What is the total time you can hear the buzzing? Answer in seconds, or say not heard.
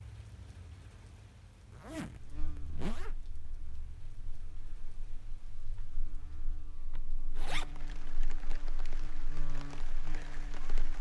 9 s.